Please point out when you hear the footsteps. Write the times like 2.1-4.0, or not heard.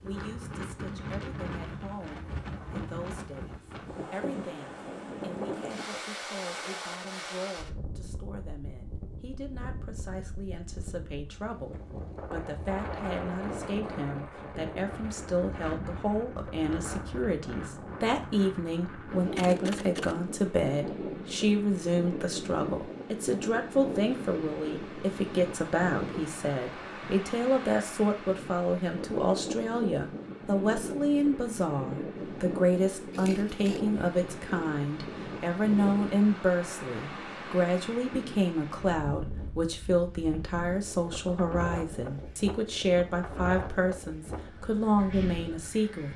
not heard.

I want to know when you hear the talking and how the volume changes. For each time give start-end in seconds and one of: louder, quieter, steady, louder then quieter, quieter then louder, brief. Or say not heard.
0.0-46.1 louder.